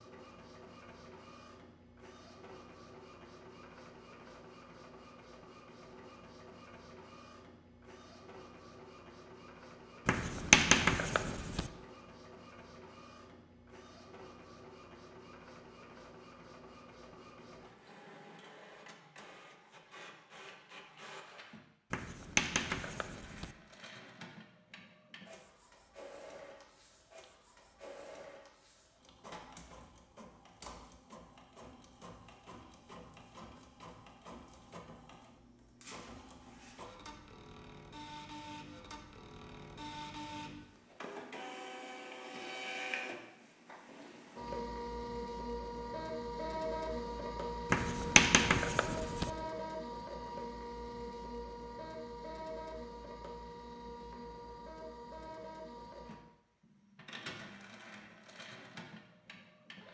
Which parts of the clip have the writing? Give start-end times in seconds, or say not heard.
10.1-11.7, 21.9-23.5, 47.7-49.3.